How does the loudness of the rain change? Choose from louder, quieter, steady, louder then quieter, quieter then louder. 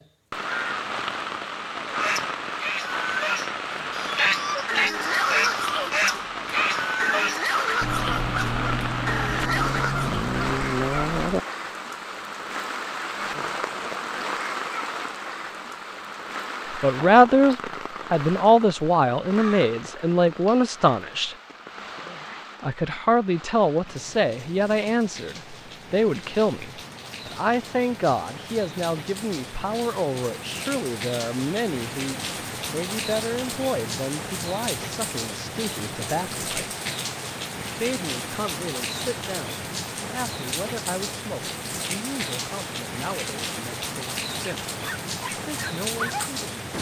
quieter then louder.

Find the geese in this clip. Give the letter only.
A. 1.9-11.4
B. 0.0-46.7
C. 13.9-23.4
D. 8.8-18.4
A.